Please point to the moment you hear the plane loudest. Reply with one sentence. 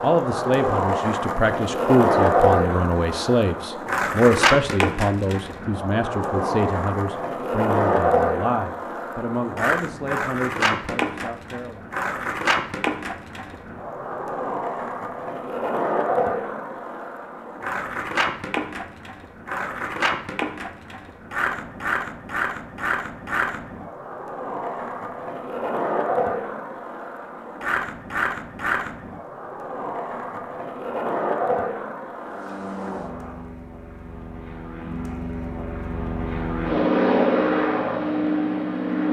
The loudest moment of the plane is at 37 seconds.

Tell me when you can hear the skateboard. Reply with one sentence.
The skateboard can be heard from 0.0 to 33.5 s.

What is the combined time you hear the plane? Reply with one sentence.
The plane can be heard for 7 seconds in total.